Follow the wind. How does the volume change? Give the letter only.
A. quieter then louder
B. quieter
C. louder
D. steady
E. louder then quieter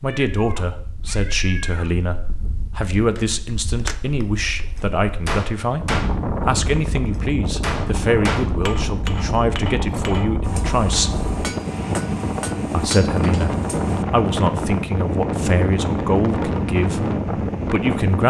C.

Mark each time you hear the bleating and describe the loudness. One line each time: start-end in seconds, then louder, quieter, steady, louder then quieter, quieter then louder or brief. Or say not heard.
not heard.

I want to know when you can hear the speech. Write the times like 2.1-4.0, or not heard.
0.0-11.2, 12.7-18.2.